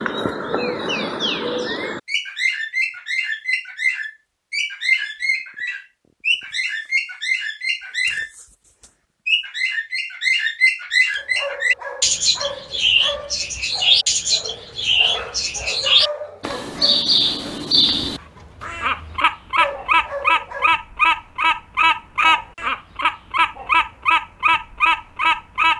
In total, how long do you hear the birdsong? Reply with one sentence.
The birdsong can be heard for 26 seconds in total.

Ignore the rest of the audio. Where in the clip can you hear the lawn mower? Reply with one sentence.
The lawn mower can't be heard in this clip.